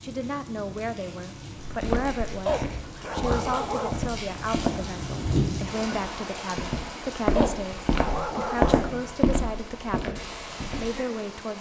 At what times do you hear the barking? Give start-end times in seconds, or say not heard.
2.5-4.2, 7.3-9.1.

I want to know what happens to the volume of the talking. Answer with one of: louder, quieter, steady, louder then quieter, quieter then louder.
steady.